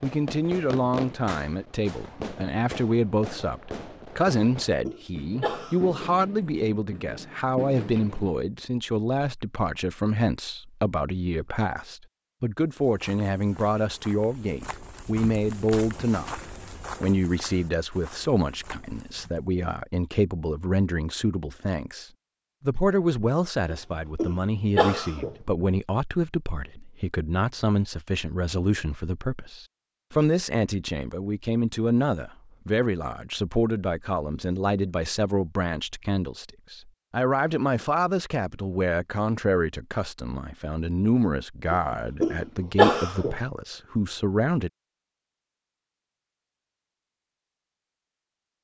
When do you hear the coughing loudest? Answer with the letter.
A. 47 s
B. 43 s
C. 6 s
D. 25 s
B.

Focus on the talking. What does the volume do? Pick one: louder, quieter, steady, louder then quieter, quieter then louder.
steady.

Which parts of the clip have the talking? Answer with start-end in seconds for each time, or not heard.
0.0-16.4, 17.0-44.7.